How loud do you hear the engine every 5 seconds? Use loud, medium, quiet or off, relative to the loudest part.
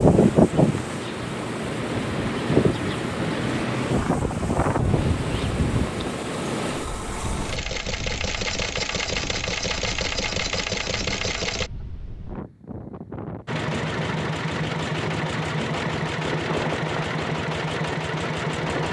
quiet, loud, loud, loud.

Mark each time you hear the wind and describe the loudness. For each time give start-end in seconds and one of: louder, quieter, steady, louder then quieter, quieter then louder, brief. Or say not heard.
0.0-18.8 quieter then louder.